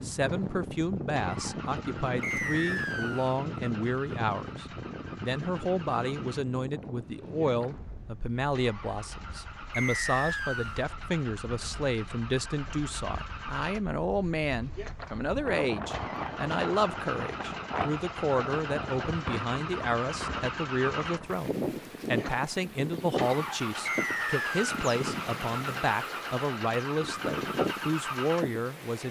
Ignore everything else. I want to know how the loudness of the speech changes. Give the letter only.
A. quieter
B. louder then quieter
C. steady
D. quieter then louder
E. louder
C.